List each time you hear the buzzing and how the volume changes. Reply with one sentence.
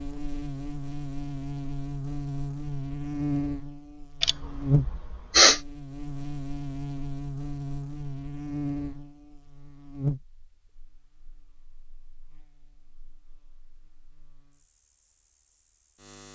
You can hear the buzzing from 0.0 to 16.2 s, getting quieter.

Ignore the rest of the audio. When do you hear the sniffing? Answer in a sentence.
The sniffing can be heard from 4.2 to 5.6 s.